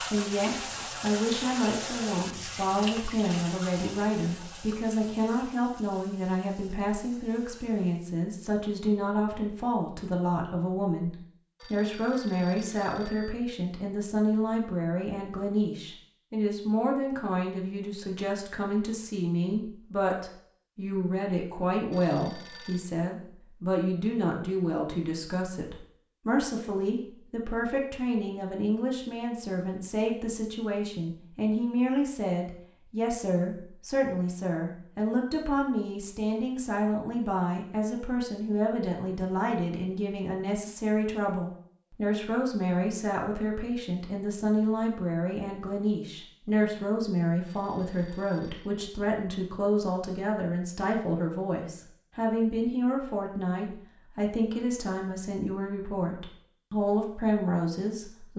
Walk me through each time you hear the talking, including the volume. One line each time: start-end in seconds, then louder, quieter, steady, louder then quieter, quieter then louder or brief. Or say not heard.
0.0-58.3 steady.